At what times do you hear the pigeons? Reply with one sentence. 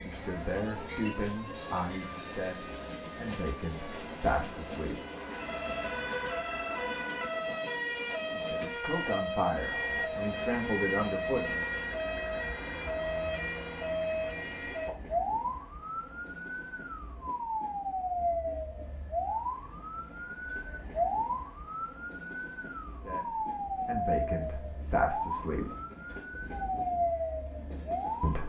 You can't hear the pigeons here.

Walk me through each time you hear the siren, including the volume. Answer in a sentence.
The siren can be heard from 0.0 to 28.4 s, getting louder.